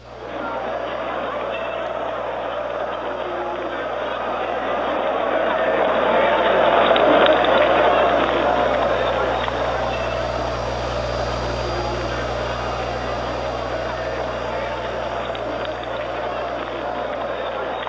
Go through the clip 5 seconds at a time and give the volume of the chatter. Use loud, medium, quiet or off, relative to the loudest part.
medium, loud, medium, medium.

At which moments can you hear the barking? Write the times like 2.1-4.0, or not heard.
not heard.